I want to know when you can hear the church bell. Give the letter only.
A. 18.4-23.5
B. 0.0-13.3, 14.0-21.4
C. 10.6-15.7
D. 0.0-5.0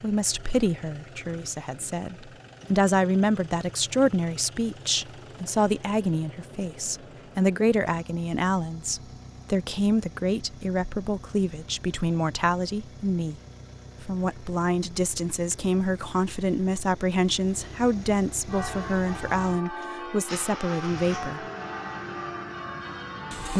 A.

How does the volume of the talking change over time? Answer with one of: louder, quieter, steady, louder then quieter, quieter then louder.
steady.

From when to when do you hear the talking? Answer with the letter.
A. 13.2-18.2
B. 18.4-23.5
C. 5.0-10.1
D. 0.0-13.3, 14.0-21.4
D.